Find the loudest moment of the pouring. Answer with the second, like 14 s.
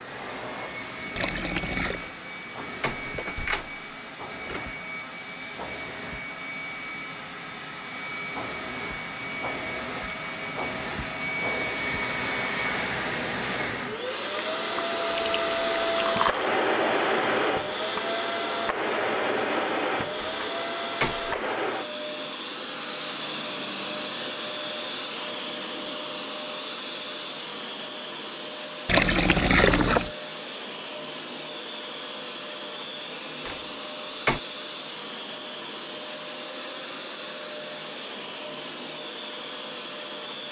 30 s.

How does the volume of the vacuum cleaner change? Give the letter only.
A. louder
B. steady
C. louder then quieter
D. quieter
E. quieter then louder
C.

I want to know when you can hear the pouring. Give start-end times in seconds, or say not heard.
1.1-2.0, 15.1-16.5, 28.9-30.1.